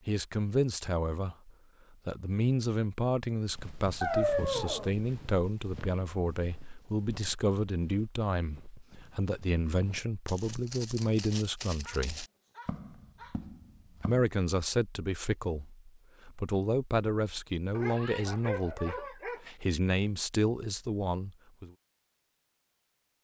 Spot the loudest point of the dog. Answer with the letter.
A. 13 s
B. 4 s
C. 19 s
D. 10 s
B.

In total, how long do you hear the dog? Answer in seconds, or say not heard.
4 s.